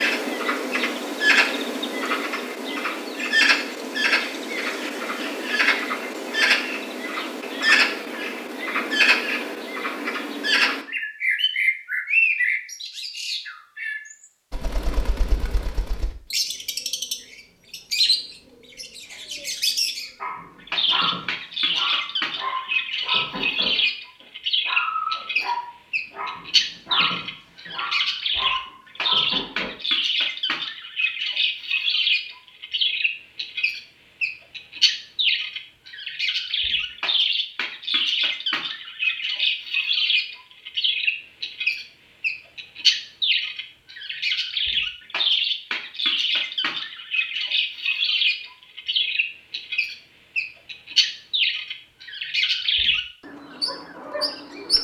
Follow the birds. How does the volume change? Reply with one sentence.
The volume of the birds stays about the same.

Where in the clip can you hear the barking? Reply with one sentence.
You can hear the barking from 20.2 to 23.9 s and from 24.6 to 29.7 s.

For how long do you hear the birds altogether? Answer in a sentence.
The birds can be heard for 55 seconds in total.